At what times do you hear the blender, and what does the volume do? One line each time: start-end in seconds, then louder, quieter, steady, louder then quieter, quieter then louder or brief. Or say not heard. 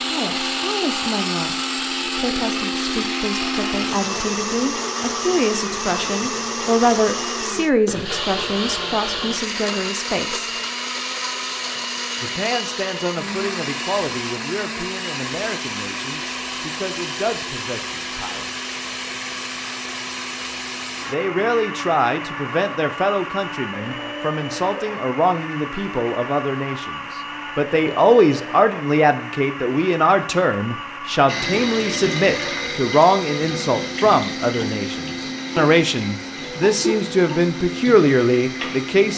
0.0-39.1 quieter.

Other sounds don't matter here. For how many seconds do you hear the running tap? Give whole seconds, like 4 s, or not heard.
8 s.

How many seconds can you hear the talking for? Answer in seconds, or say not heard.
35 s.